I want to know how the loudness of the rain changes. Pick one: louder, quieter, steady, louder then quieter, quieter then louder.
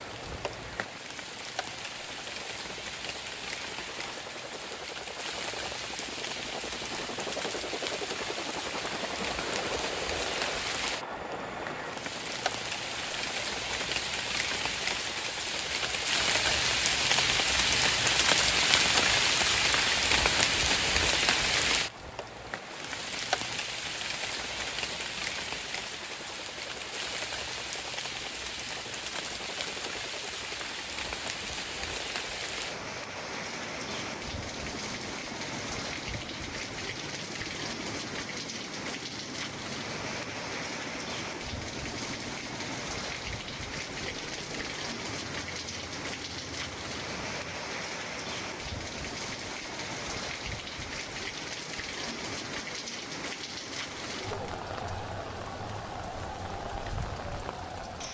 louder then quieter.